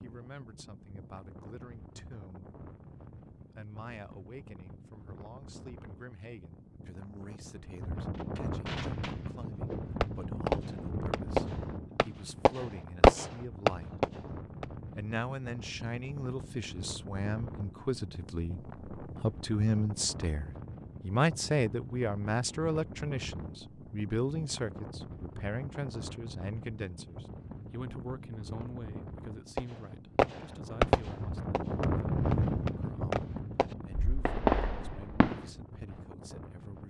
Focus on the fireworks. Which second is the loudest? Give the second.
13 s.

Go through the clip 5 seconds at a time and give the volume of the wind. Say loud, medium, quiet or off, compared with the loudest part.
quiet, medium, medium, medium, medium, medium, loud, quiet.